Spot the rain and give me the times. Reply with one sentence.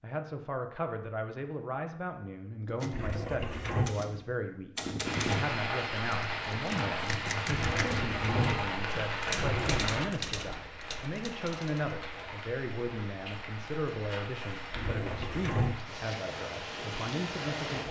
The rain can be heard from 5.0 to 17.8 s.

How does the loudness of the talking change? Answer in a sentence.
The volume of the talking stays about the same.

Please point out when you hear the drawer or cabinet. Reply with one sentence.
The drawer or cabinet can be heard from 2.9 to 4.0 s, from 7.5 to 9.8 s and from 14.7 to 15.8 s.